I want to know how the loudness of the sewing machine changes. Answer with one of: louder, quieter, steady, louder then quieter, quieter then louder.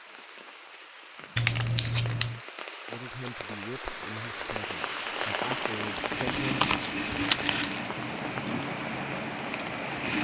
louder.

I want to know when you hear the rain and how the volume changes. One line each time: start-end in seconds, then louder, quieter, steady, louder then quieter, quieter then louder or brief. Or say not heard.
0.0-9.9 louder then quieter.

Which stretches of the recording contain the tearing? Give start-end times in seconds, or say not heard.
1.4-2.4, 6.0-7.8.